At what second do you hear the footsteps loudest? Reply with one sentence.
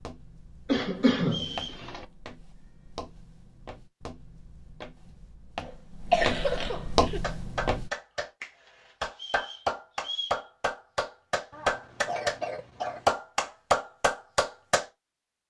The volume of the footsteps peaks at 7 seconds.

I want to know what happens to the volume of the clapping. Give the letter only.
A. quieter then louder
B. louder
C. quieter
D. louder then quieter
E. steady
B.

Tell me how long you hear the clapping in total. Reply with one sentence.
The clapping can be heard for 8 seconds in total.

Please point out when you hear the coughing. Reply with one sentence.
The coughing can be heard from 0.7 to 2.0 s, from 5.6 to 7.2 s and from 11.5 to 13.1 s.